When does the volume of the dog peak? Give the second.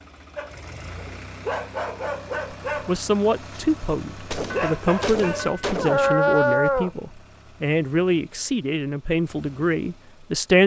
6 s.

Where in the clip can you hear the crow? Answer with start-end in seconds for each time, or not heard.
not heard.